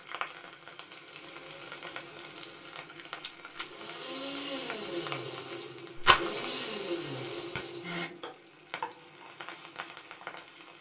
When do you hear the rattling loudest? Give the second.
6 s.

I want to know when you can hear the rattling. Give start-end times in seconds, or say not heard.
2.8-3.6, 6.0-6.4.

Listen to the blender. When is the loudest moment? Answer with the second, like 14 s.
7 s.